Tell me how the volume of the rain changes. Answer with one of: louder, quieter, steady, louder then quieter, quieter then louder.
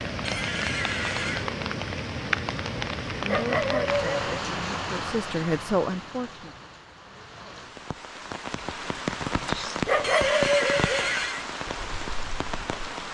quieter then louder.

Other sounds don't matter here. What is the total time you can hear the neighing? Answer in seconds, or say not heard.
3 s.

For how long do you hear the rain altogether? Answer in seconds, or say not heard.
13 s.